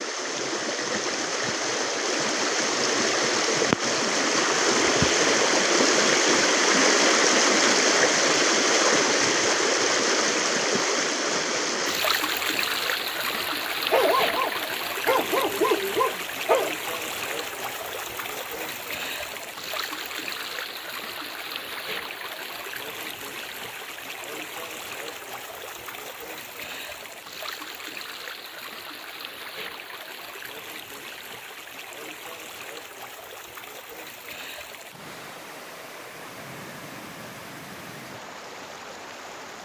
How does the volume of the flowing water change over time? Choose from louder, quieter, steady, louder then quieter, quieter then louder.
quieter.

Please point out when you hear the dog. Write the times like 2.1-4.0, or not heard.
13.9-16.7.